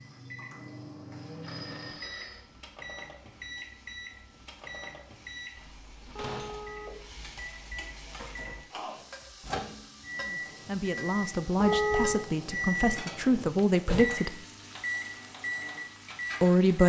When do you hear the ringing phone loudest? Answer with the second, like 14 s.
12 s.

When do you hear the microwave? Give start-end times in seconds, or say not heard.
0.0-16.8.